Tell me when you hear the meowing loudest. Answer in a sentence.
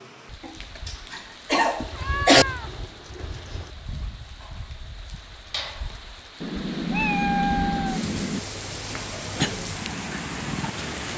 The volume of the meowing peaks at 7 seconds.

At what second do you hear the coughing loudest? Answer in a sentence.
The volume of the coughing peaks at 2 seconds.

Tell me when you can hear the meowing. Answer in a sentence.
The meowing can be heard from 1.8 to 3.7 s and from 6.4 to 8.4 s.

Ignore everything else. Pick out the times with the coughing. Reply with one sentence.
You can hear the coughing from 0.5 to 2.5 s and from 8.9 to 9.6 s.